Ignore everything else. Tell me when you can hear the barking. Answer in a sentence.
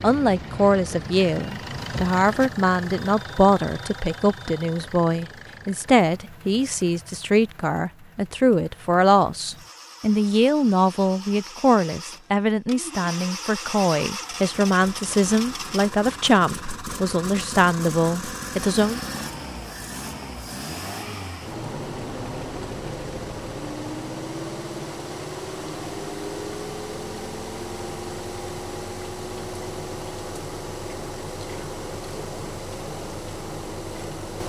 The barking can't be heard in this clip.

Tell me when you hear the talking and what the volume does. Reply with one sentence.
You can hear the talking from 0.0 to 19.0 s, at a steady volume.